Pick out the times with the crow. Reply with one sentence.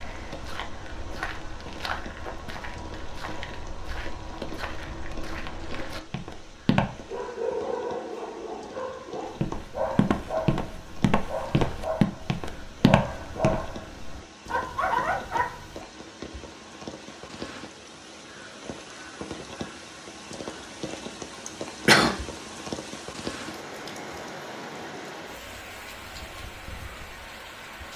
The crow can't be heard in this clip.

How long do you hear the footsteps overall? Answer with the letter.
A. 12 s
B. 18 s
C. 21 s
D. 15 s
A.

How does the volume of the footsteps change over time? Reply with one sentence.
The loudness of the footsteps goes up.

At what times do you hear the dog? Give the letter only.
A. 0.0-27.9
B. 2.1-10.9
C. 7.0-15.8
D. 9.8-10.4
C.